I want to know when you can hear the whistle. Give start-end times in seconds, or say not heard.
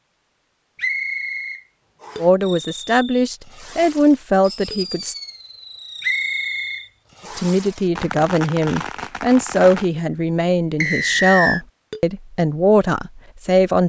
0.8-2.2, 6.0-7.5, 10.8-11.7.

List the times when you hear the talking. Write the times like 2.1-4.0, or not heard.
2.2-5.2, 7.3-13.8.